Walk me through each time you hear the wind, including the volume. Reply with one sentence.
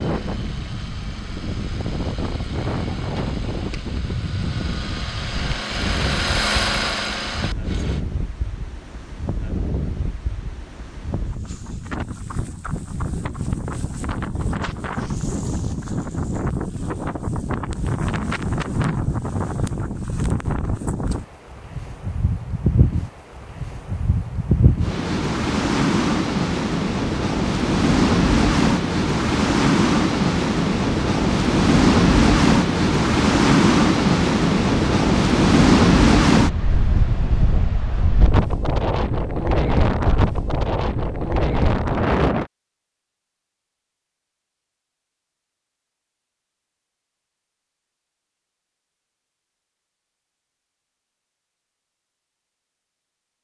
You can hear the wind from 0.0 to 42.5 s, getting louder.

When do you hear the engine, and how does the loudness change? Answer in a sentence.
You can hear the engine from 0.0 to 8.1 s, getting louder.